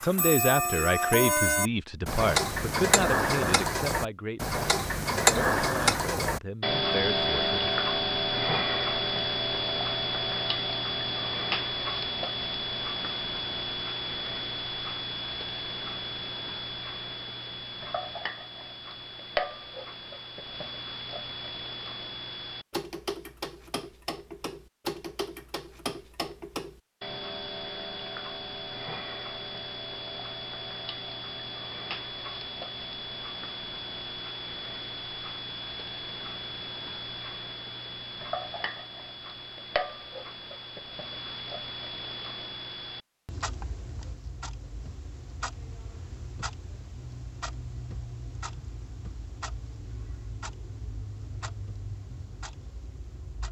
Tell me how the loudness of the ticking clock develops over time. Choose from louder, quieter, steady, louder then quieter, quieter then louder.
quieter.